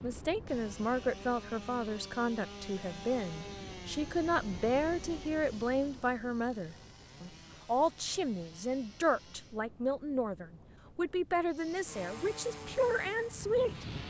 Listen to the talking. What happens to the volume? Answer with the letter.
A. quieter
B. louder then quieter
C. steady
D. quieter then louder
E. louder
C.